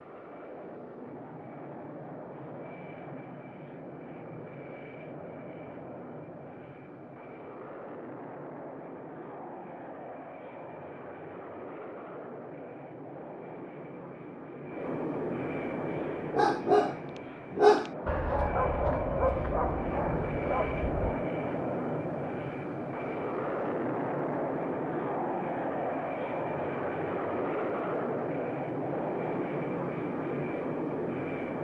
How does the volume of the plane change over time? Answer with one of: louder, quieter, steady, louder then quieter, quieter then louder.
louder.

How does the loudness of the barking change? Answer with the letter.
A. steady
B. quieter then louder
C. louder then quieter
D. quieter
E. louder
D.